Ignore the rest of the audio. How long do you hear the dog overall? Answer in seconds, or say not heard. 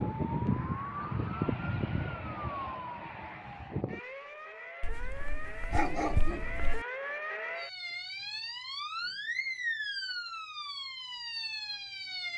2 s.